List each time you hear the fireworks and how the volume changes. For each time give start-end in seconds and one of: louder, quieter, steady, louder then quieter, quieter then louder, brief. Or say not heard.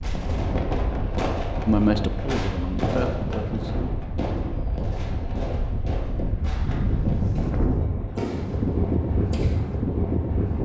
0.0-9.8 quieter then louder.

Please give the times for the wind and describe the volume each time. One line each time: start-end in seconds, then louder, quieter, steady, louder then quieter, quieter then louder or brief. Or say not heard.
0.0-10.6 louder.